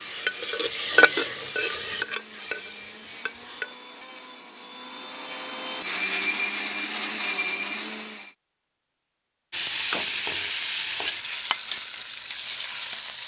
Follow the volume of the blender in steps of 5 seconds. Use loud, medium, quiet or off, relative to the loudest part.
quiet, loud, off.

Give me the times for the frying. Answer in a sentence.
You can hear the frying from 0.0 to 3.8 s and from 9.5 to 13.2 s.